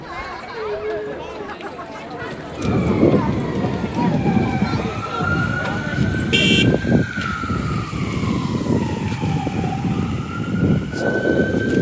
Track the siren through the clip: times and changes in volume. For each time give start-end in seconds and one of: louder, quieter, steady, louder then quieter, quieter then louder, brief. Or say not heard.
2.5-11.7 steady.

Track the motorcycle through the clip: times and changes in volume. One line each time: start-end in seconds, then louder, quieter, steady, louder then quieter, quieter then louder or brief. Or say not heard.
not heard.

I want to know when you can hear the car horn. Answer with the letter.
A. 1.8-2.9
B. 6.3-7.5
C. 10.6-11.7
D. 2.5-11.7
B.